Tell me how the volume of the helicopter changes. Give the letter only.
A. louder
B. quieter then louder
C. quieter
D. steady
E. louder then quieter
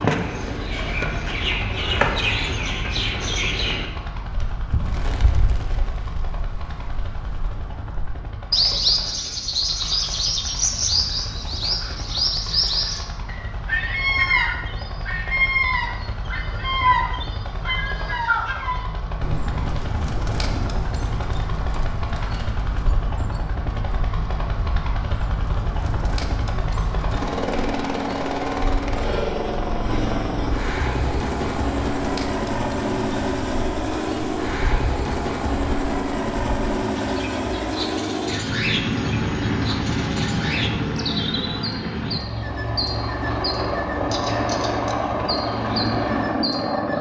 A.